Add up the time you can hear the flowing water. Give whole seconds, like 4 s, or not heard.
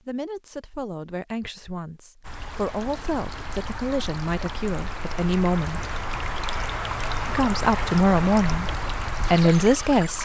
8 s.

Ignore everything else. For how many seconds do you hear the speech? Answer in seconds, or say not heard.
9 s.